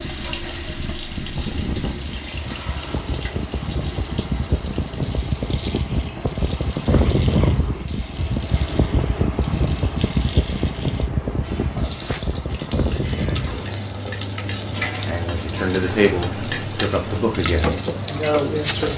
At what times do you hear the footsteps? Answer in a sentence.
You can't hear the footsteps here.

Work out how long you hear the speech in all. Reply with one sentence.
You can hear the speech for 4 seconds altogether.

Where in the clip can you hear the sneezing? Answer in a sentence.
You can't hear the sneezing here.